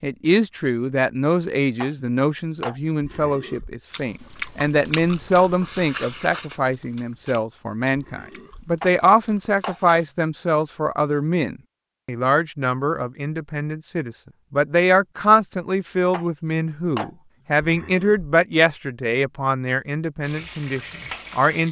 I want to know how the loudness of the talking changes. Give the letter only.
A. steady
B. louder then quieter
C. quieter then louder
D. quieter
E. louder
A.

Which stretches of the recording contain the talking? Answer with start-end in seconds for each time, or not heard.
0.0-21.6.